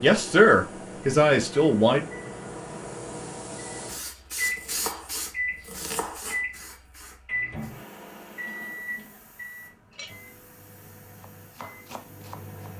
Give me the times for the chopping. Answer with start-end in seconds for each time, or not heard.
4.0-6.5, 11.3-12.6.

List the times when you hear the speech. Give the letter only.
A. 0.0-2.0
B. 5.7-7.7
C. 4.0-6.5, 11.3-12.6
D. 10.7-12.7
A.